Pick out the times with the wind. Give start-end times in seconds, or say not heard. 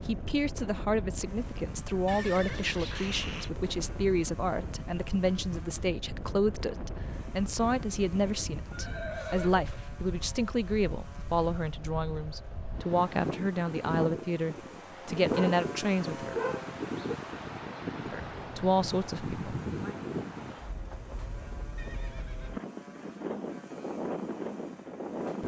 0.0-25.4.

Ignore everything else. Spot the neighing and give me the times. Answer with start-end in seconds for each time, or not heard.
2.0-3.5, 8.7-9.7, 21.8-22.6.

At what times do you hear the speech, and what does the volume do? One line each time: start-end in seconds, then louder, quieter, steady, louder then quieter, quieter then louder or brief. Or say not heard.
0.0-16.4 steady
18.1-19.9 brief.